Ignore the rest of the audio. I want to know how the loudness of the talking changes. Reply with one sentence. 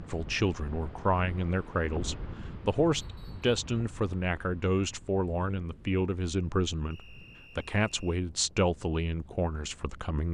The volume of the talking stays about the same.